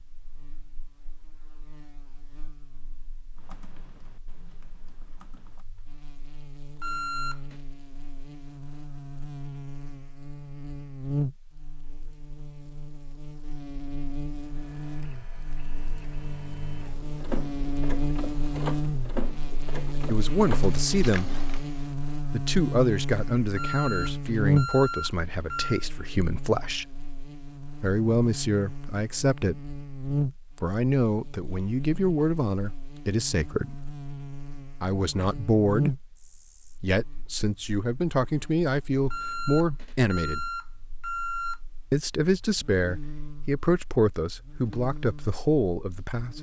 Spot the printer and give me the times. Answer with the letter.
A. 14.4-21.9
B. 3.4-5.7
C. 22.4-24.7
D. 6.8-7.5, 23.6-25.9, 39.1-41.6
A.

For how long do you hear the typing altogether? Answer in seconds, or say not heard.
2 s.